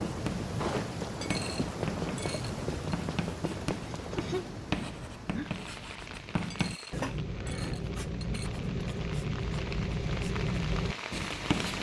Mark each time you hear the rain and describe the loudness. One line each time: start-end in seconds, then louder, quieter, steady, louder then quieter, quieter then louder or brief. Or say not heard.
0.0-11.7 quieter then louder.